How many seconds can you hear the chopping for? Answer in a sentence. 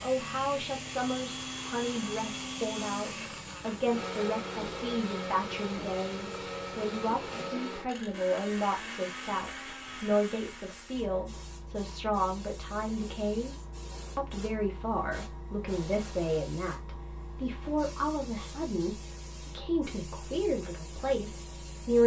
The chopping can't be heard in this clip.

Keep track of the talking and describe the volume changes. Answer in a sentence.
The loudness of the talking stays about the same.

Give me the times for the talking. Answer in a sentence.
You can hear the talking from 0.0 to 22.0 s.